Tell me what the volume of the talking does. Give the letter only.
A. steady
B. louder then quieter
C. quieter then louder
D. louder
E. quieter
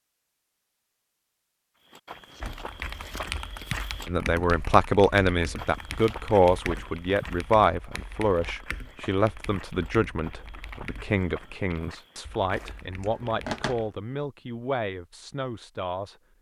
E.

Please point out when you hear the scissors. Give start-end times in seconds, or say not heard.
2.3-3.4, 12.6-13.8.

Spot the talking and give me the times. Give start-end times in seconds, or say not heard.
4.0-16.1.